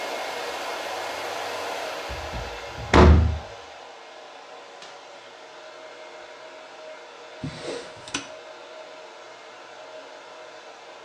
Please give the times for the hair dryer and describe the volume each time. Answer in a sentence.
The hair dryer can be heard from 0.0 to 11.0 s, getting quieter.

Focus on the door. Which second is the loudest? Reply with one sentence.
The volume of the door peaks at 3 seconds.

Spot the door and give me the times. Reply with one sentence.
You can hear the door from 2.1 to 3.4 s and from 7.4 to 8.2 s.